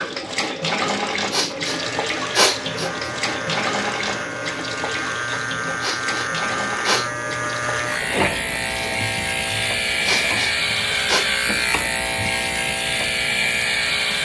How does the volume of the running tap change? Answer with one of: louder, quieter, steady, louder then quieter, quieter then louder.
quieter.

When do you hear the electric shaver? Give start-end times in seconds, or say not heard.
1.6-14.1.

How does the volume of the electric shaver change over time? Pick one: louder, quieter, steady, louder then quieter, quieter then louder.
louder.